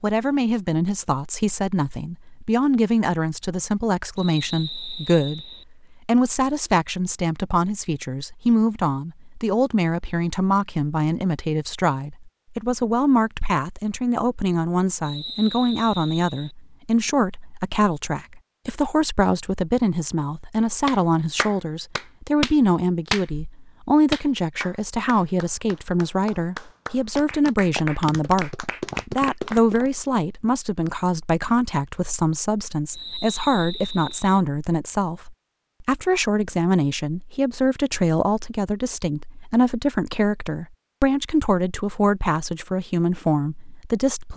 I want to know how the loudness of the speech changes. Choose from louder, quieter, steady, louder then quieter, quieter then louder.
steady.